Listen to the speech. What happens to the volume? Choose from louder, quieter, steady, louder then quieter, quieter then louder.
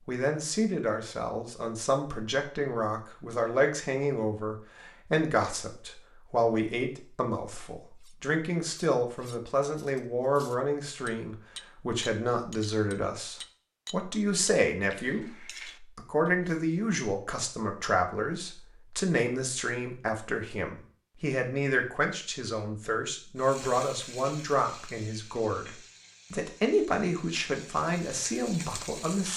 steady.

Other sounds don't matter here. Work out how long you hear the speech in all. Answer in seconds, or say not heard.
29 s.